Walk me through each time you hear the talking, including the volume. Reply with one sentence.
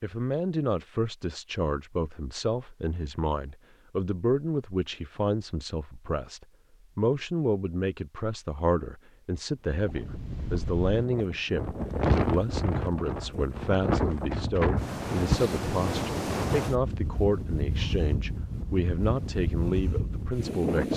You can hear the talking from 0.0 to 20.9 s, at a steady volume.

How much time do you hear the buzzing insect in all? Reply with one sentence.
The buzzing insect can't be heard in this clip.